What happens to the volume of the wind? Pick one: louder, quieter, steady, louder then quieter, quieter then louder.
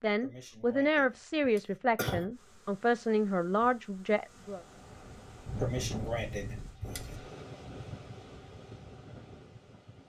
quieter.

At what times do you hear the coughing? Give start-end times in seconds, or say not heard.
0.2-2.2, 5.6-7.2.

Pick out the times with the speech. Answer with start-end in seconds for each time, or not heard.
0.0-4.6.